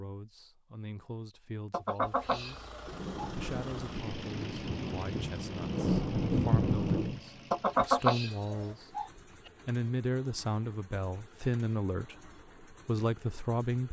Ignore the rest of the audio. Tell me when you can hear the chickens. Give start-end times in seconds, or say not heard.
1.7-3.3, 7.5-9.1.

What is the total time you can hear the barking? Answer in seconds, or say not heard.
not heard.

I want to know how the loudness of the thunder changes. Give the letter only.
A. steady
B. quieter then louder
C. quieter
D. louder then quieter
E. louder
E.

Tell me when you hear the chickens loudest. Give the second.
8 s.